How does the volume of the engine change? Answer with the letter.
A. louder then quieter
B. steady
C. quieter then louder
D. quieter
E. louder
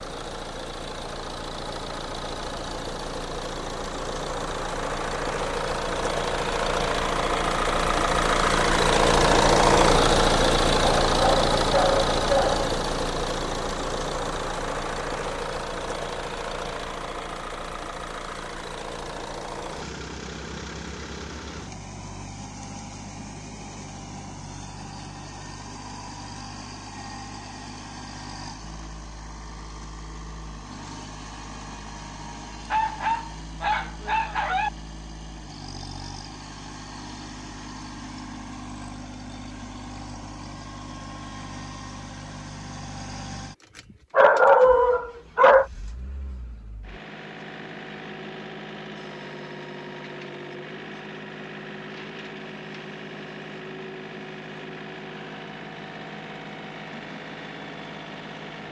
D.